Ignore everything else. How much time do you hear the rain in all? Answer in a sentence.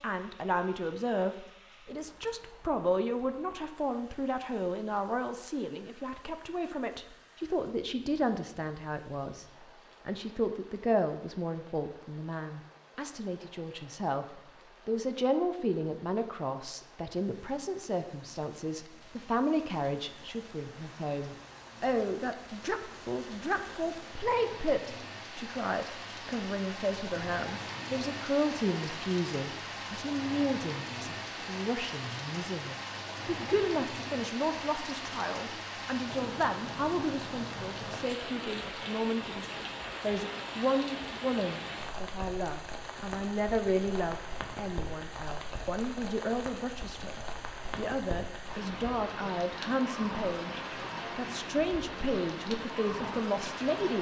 The rain can be heard for 54 seconds in total.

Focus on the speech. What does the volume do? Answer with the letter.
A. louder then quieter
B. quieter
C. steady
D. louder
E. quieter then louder
C.